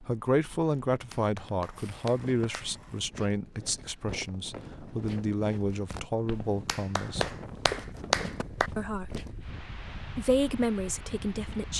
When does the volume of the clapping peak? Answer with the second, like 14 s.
8 s.